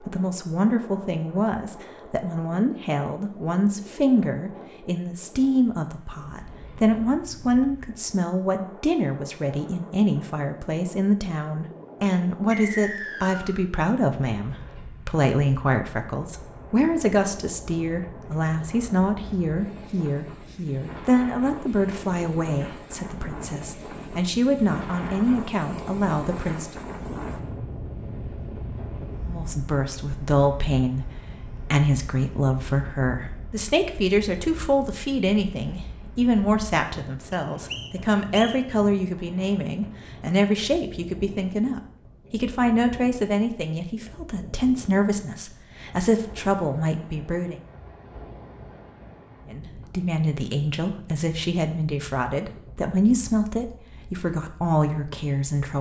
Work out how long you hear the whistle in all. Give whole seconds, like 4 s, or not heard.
2 s.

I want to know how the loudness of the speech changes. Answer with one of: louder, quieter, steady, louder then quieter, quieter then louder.
steady.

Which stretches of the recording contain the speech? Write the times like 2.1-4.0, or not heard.
0.0-26.7, 29.2-47.5, 49.5-55.7.